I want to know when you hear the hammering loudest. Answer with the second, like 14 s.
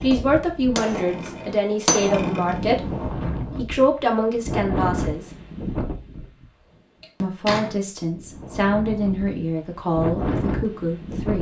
2 s.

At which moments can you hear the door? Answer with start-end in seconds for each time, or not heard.
1.1-1.6, 7.0-7.8.